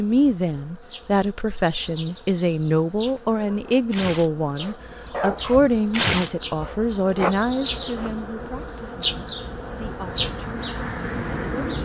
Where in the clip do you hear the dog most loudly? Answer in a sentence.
The loudest moment of the dog is at 6 seconds.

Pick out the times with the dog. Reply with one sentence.
You can hear the dog from 3.4 to 6.8 s.